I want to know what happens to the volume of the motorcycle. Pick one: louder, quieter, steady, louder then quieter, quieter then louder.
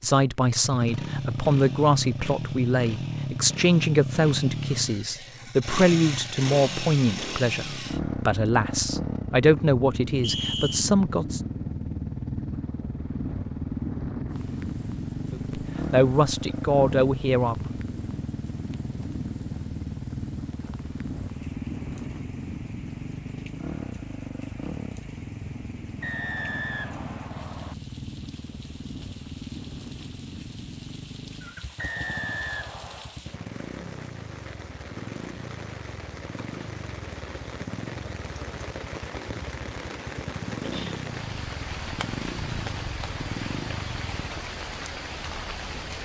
quieter.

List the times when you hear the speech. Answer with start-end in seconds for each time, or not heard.
0.0-11.4, 15.3-17.6.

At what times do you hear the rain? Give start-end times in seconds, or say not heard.
14.2-46.0.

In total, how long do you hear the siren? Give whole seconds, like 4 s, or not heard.
not heard.